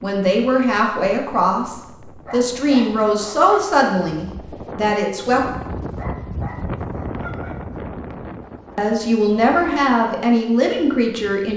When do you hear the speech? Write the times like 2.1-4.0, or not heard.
0.0-5.5, 8.8-11.5.